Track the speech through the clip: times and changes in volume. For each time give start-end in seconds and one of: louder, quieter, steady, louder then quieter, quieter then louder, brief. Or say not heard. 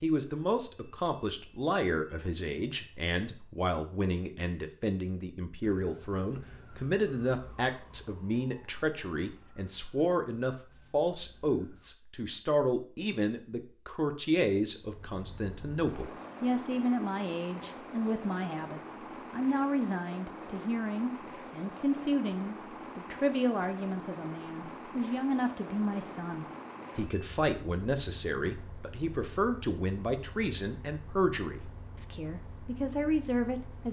0.0-33.8 steady.